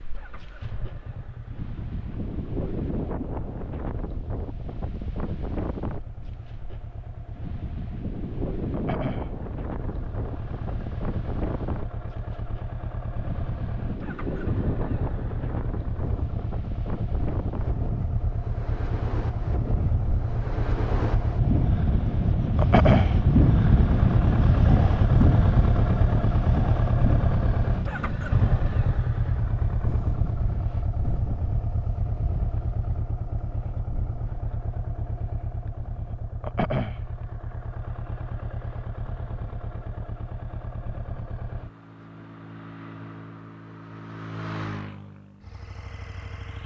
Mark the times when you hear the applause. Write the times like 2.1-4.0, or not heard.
not heard.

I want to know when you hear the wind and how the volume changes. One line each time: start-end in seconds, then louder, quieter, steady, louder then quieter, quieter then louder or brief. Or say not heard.
0.0-32.8 louder then quieter.